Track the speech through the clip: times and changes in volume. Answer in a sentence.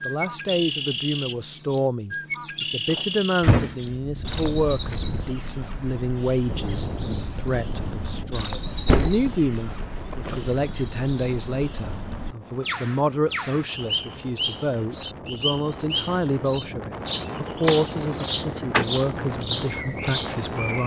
The speech can be heard from 0.1 to 20.8 s, at a steady volume.